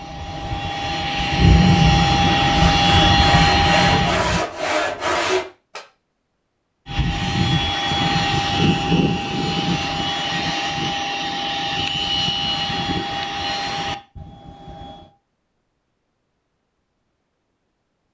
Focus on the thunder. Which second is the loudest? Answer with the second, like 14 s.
2 s.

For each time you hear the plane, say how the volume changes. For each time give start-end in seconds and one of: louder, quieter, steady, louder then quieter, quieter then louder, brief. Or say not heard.
0.0-4.2 louder
6.8-15.1 quieter.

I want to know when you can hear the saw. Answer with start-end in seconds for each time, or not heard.
2.8-5.8.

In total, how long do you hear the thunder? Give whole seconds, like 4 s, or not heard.
3 s.